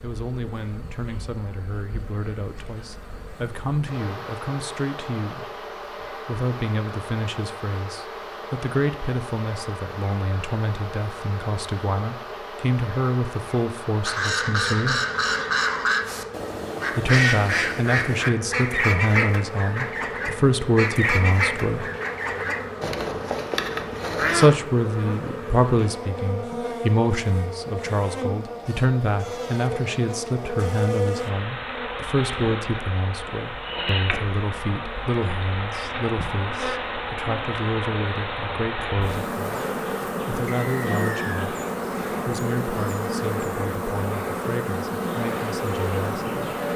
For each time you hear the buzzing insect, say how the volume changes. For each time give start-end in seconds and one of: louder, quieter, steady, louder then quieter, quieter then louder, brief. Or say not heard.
0.0-46.7 louder.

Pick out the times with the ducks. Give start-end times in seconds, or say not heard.
14.1-24.6.